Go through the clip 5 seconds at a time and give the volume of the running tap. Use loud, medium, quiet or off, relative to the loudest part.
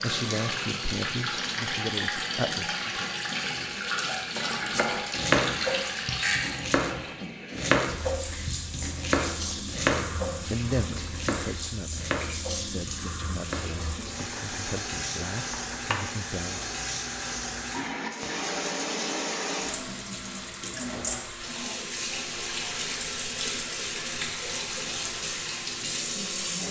loud, loud, medium, loud, loud, loud.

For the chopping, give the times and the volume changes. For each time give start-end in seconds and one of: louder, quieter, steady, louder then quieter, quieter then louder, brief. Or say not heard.
4.3-14.6 quieter
15.5-16.1 brief.